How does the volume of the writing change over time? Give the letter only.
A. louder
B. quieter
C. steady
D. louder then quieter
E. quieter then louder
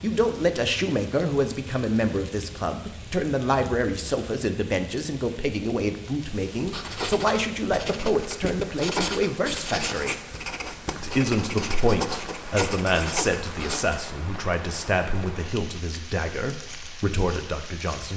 C.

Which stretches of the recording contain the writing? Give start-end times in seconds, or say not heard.
6.3-14.0.